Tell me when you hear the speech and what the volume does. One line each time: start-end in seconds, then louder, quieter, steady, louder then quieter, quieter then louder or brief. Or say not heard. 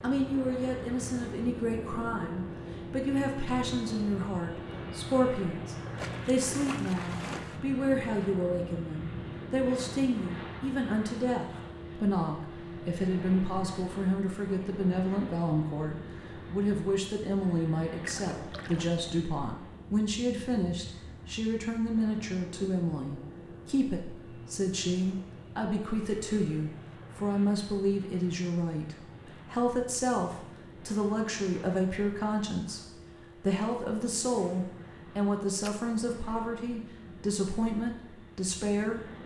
0.0-39.2 steady.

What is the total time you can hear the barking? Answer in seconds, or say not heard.
not heard.